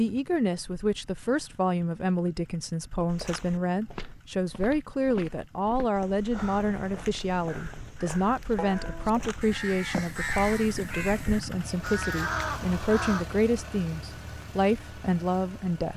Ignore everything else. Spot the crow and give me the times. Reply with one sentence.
You can hear the crow from 6.3 to 13.2 s.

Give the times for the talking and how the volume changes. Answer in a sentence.
You can hear the talking from 0.0 to 15.9 s, at a steady volume.